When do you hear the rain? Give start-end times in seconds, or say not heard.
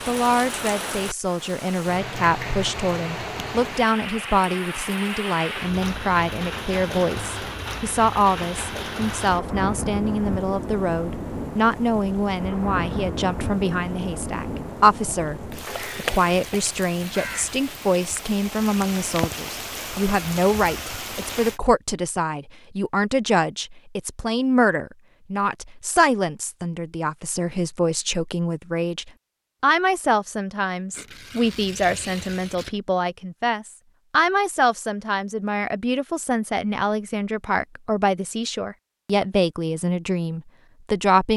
0.0-21.6.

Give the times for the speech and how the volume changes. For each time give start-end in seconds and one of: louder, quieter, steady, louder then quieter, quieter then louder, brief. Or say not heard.
0.1-41.3 steady.